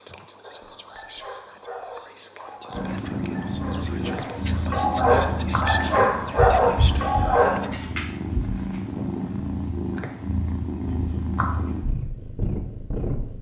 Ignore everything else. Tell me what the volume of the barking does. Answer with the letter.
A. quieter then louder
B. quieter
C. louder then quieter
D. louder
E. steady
D.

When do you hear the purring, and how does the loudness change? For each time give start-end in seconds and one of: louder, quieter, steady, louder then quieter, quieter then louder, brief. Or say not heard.
2.7-13.3 steady.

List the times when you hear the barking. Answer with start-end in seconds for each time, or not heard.
0.4-7.8.